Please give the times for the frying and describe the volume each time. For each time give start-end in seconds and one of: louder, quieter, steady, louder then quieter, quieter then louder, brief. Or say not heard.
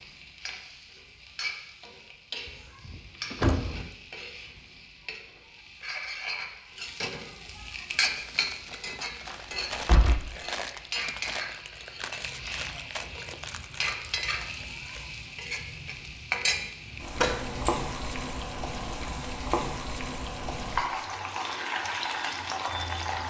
0.0-23.2 louder.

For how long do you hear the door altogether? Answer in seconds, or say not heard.
3 s.